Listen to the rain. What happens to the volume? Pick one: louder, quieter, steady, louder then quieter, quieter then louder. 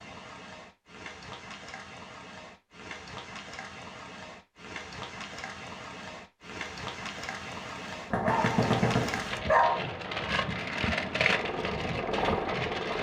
louder.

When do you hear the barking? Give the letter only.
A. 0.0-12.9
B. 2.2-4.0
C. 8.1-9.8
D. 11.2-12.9
C.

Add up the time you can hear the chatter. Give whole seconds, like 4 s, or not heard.
not heard.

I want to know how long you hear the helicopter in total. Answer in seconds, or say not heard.
2 s.